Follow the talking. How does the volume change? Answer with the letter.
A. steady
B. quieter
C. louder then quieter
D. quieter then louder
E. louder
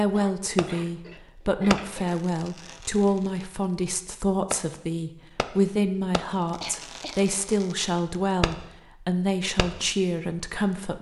A.